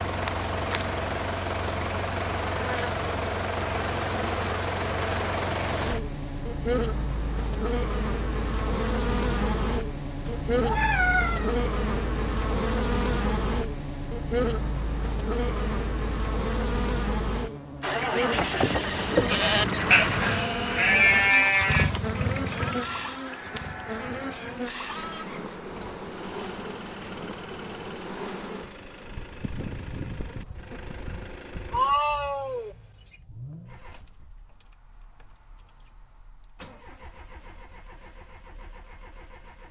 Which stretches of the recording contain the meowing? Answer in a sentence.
You can hear the meowing from 10.2 to 11.6 s and from 31.7 to 32.8 s.